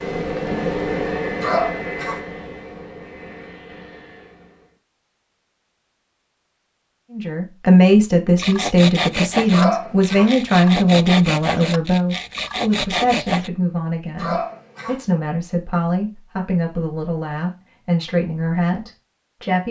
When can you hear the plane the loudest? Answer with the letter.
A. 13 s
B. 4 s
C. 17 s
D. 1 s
D.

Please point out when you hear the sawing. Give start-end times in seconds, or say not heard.
8.3-13.5.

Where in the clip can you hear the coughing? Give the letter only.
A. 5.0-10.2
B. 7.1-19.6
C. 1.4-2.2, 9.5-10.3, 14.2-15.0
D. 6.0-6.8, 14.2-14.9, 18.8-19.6
C.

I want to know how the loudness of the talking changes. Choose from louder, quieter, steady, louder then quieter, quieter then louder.
quieter.